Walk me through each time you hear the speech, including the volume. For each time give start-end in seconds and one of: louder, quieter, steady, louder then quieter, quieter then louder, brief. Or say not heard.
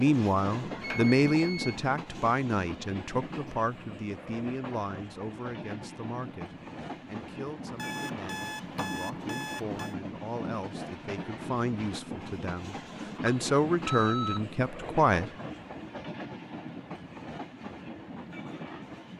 0.0-15.3 quieter then louder.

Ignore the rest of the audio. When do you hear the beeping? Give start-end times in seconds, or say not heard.
0.8-1.8, 7.8-9.9, 13.2-14.4.